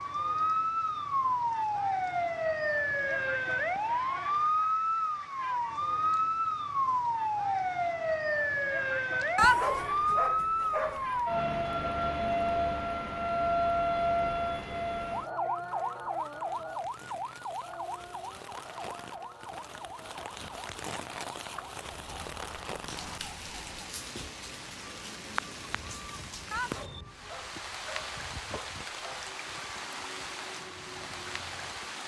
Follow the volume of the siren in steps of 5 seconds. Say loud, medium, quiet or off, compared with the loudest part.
loud, loud, loud, medium, quiet, quiet, quiet.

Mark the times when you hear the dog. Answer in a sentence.
The dog can be heard from 9.3 to 11.1 s and from 26.5 to 29.2 s.